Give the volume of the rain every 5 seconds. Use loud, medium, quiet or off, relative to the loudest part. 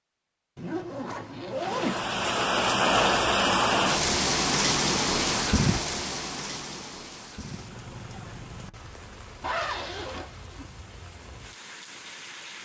loud, medium, quiet.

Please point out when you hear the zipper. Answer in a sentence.
You can hear the zipper from 0.6 to 2.2 s and from 9.4 to 10.7 s.